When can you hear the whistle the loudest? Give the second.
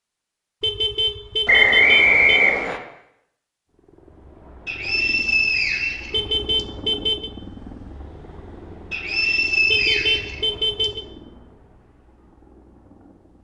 2 s.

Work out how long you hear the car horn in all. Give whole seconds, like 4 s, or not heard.
4 s.